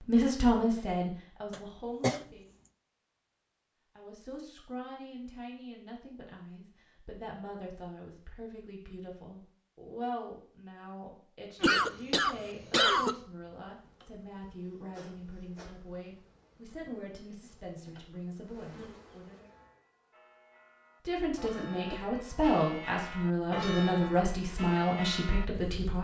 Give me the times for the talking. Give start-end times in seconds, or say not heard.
0.0-2.5, 4.0-19.4, 21.1-25.9.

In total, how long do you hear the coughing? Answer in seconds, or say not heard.
3 s.